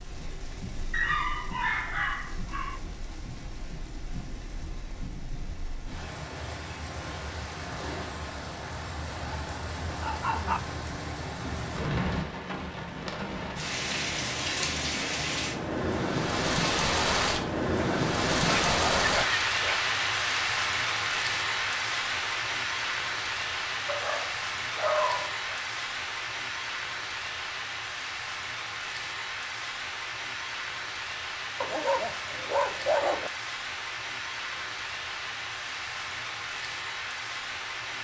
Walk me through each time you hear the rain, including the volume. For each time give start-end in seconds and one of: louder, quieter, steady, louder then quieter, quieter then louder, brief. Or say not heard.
0.0-37.9 louder then quieter.